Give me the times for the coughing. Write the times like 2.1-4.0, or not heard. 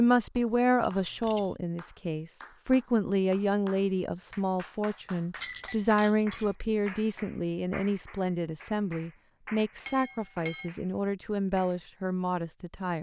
not heard.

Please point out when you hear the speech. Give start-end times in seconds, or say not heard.
0.0-12.9.